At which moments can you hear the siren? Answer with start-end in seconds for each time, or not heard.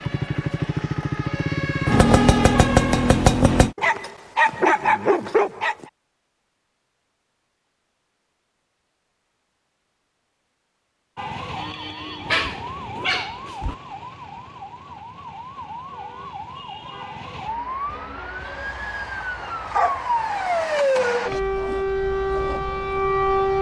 0.0-3.2, 11.2-23.5.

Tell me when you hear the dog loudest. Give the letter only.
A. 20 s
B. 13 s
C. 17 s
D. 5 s
D.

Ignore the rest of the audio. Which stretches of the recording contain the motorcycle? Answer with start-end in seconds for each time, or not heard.
0.0-3.8.